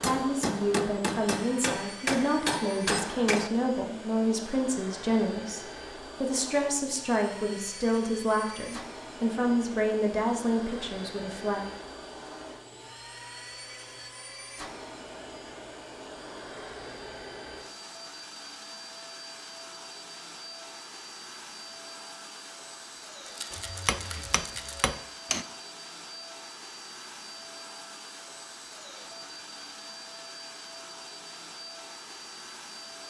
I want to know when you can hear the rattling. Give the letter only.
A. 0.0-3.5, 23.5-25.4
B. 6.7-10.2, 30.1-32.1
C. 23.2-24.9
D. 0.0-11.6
C.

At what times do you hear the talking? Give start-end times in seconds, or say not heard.
0.0-11.6.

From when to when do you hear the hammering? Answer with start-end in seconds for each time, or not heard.
0.0-3.5, 23.5-25.4.